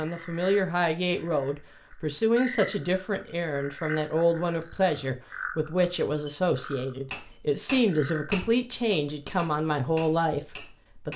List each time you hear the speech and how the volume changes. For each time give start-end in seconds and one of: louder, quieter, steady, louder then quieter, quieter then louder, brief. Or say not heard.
0.0-11.1 steady.